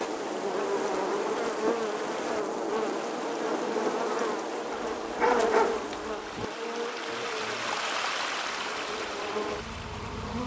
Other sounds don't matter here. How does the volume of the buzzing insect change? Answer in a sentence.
The volume of the buzzing insect goes down.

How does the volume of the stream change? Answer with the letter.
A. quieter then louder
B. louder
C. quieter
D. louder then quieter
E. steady
B.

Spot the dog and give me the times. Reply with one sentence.
The dog can be heard from 4.7 to 6.5 s.